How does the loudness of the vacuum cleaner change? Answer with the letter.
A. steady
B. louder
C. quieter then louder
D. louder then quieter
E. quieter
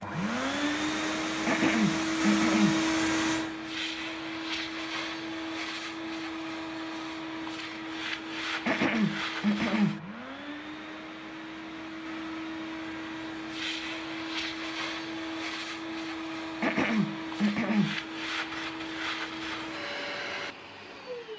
E.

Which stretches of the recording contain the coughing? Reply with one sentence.
You can hear the coughing from 1.4 to 2.8 s, from 8.7 to 10.0 s and from 16.6 to 17.9 s.